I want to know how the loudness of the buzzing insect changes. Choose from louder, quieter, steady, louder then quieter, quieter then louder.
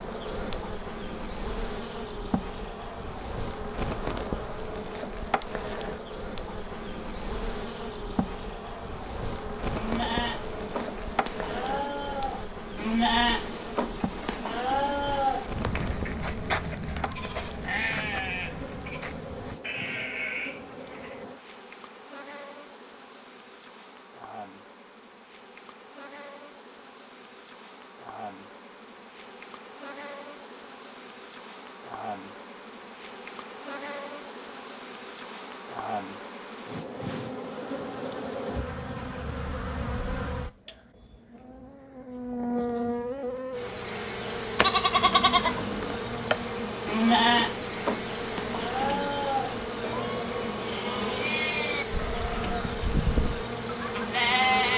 quieter then louder.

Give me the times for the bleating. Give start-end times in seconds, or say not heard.
9.8-21.2, 44.5-54.7.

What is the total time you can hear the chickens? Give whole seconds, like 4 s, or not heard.
not heard.